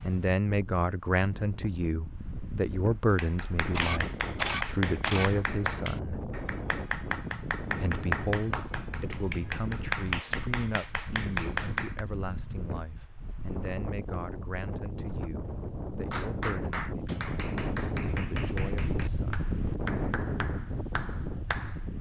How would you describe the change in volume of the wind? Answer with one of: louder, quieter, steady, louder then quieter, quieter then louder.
louder.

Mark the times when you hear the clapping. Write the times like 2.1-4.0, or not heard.
3.1-12.1, 16.1-21.9.